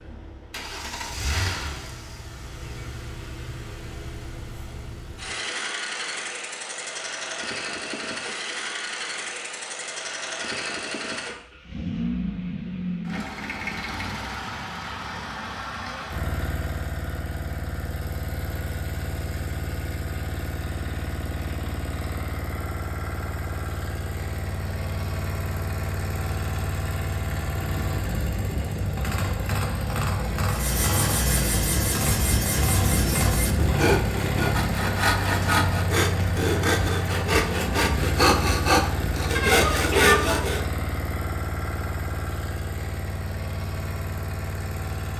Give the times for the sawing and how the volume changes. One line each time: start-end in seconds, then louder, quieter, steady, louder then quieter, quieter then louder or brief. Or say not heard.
30.5-40.6 louder.